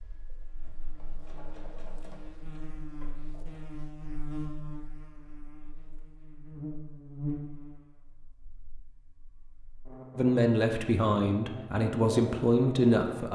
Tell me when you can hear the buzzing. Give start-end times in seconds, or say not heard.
0.0-13.2.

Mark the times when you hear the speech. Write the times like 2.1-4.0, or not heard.
10.2-13.2.